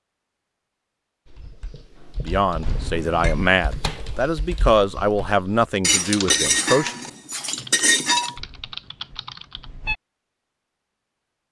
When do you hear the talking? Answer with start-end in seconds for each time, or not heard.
2.2-7.0.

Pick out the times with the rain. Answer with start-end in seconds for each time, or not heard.
not heard.